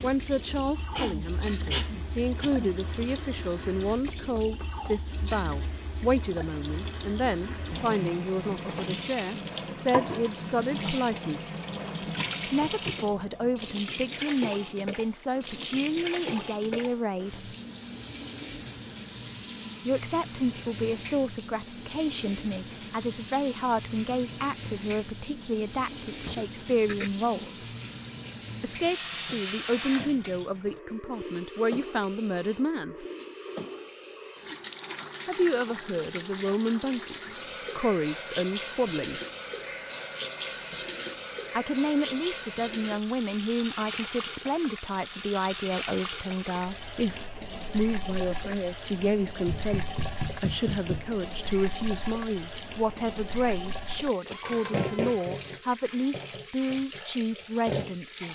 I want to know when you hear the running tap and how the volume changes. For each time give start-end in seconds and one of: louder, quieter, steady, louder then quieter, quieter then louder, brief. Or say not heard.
0.0-58.3 steady.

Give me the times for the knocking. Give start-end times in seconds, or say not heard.
4.0-4.8, 49.5-51.1.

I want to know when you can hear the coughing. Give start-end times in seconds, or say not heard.
0.9-2.8, 26.2-27.1, 54.2-55.4.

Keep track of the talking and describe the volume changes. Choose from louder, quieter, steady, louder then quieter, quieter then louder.
steady.